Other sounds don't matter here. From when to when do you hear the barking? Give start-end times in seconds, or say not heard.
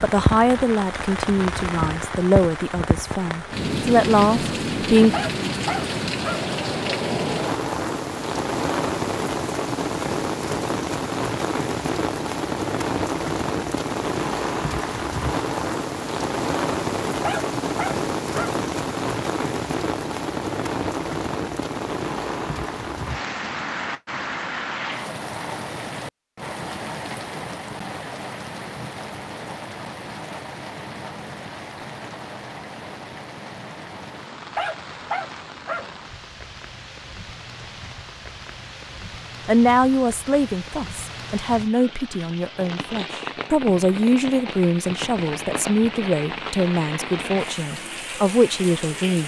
5.1-6.5, 17.2-18.6, 34.5-35.9.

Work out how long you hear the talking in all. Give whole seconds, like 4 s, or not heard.
15 s.